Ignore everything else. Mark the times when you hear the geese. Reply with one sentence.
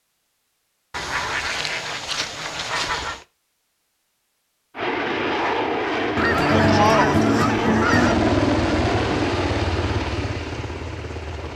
You can hear the geese from 0.9 to 3.2 s and from 6.2 to 8.2 s.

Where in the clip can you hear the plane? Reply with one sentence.
You can hear the plane from 4.8 to 11.5 s.